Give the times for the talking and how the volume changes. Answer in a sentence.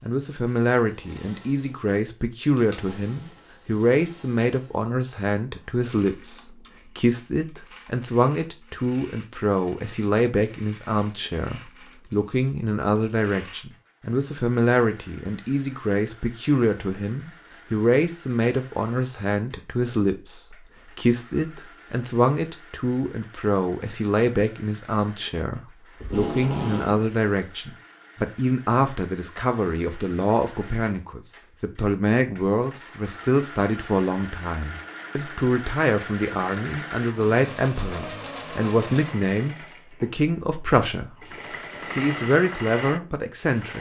The talking can be heard from 0.0 to 41.4 s, at a steady volume; and briefly from 42.0 to 43.7 s.